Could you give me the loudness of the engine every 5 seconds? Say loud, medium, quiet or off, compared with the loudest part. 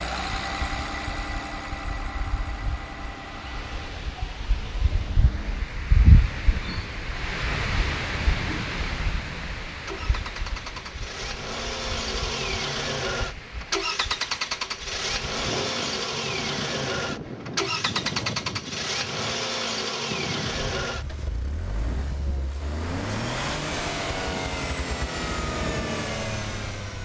medium, quiet, loud, loud, loud, loud.